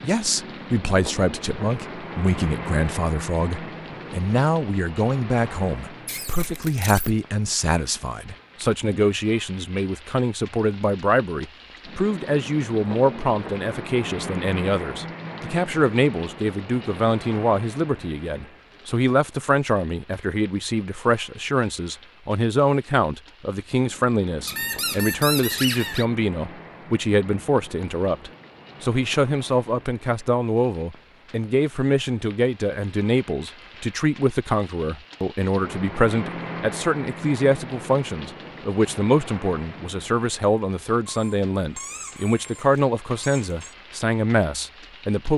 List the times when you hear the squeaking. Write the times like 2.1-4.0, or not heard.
6.0-7.1, 24.4-26.1, 41.0-43.8.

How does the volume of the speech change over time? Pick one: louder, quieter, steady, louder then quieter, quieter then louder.
steady.